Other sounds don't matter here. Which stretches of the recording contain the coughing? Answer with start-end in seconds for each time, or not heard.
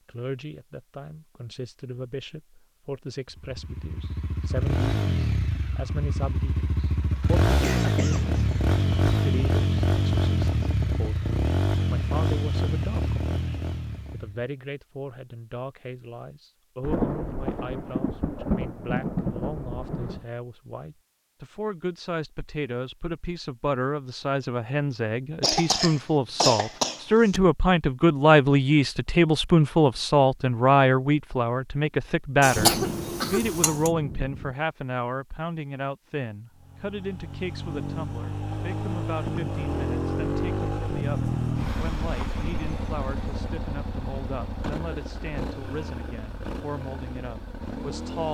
7.6-8.2, 25.4-27.4, 32.4-33.9.